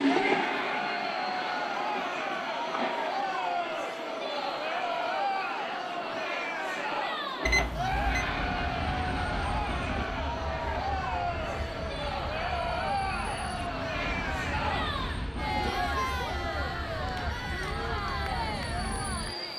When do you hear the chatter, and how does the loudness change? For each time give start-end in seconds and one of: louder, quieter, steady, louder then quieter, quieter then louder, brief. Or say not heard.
0.0-19.5 steady.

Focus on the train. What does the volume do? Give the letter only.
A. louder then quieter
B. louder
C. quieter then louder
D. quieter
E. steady
E.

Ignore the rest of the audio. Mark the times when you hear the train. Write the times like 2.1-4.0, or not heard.
0.0-19.5.